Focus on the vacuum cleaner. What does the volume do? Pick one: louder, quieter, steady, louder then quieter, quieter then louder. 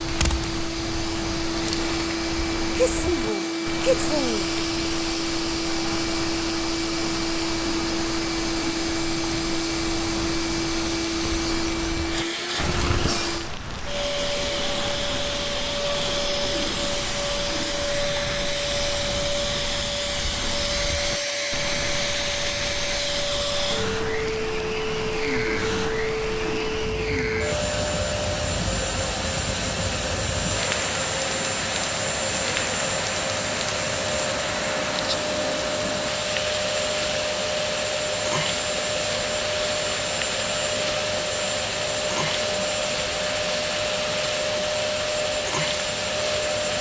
steady.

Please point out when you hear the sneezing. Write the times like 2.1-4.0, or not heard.
2.8-4.5.